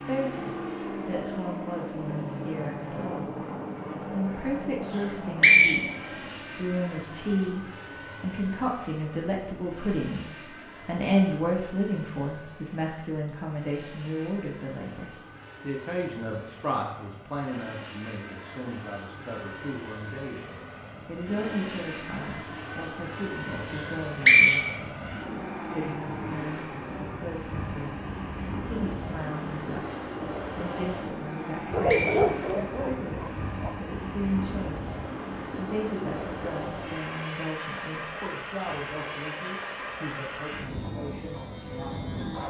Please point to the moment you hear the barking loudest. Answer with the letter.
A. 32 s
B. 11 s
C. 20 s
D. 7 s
A.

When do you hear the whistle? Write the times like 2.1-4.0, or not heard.
4.9-6.0, 23.8-24.7, 31.4-32.5.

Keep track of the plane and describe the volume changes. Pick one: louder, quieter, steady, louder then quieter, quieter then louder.
quieter then louder.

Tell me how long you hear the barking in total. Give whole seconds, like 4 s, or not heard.
2 s.